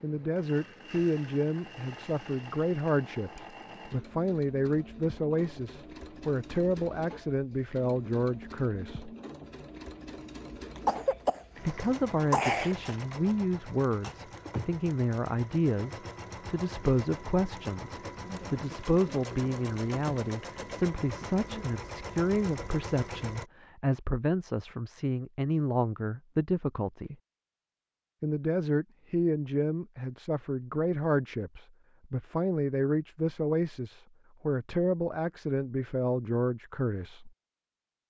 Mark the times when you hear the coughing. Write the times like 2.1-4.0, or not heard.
10.8-12.8.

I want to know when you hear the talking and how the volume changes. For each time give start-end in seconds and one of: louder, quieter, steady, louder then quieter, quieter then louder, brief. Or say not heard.
0.0-9.1 steady
11.6-27.1 steady
28.2-37.3 steady.